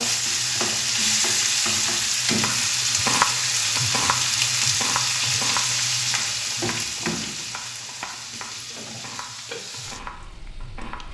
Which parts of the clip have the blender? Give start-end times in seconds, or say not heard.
not heard.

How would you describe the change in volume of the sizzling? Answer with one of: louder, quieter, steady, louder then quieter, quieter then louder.
quieter.